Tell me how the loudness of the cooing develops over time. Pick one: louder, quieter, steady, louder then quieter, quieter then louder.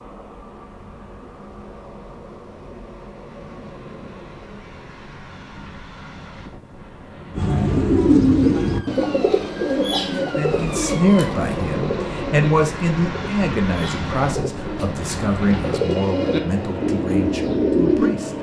quieter then louder.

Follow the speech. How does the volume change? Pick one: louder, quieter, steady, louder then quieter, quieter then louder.
quieter.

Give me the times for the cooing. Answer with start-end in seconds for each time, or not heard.
7.3-18.1.